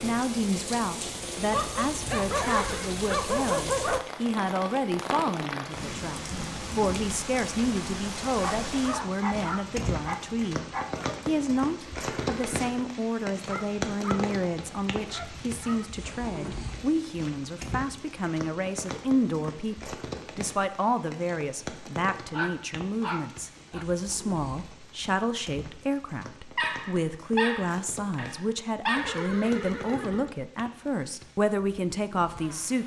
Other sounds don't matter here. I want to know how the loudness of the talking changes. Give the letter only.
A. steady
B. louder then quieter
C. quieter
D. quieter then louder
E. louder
A.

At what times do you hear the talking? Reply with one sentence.
The talking can be heard from 0.0 to 10.7 s and from 11.2 to 32.8 s.